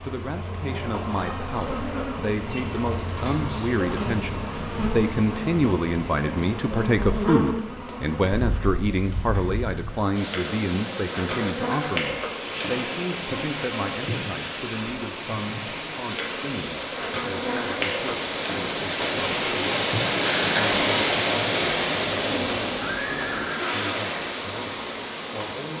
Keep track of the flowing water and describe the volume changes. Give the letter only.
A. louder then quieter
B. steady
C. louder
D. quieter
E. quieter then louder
A.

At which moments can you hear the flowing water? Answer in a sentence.
The flowing water can be heard from 10.1 to 25.7 s.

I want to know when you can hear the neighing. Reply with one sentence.
You can hear the neighing from 22.8 to 23.7 s.